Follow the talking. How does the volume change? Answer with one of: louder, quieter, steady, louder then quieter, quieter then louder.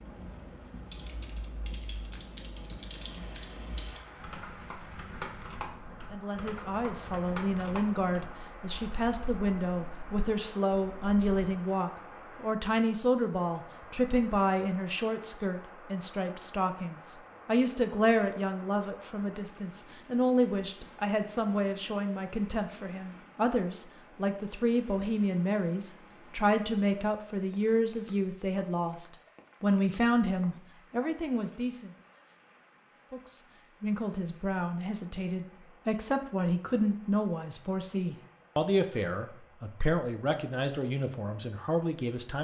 steady.